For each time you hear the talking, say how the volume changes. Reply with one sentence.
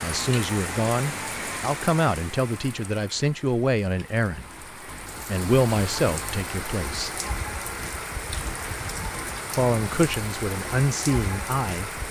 You can hear the talking from 0.0 to 4.7 s, at a steady volume; briefly from 5.2 to 7.2 s; and briefly from 9.5 to 12.0 s.